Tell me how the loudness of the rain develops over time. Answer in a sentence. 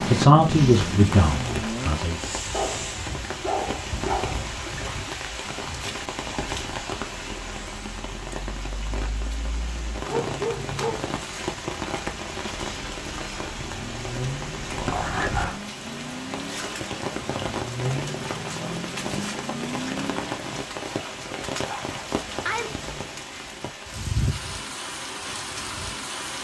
The volume of the rain stays about the same.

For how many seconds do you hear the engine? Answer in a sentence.
The engine can be heard for 10 seconds in total.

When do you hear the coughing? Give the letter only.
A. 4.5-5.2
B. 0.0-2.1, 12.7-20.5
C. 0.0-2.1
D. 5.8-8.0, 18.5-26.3
A.